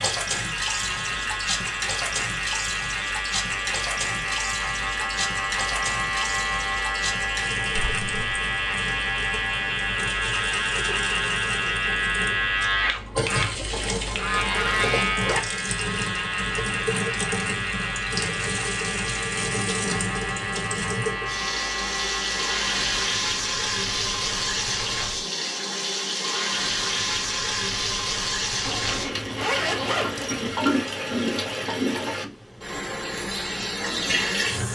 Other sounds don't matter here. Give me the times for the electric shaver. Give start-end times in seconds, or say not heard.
0.0-23.1.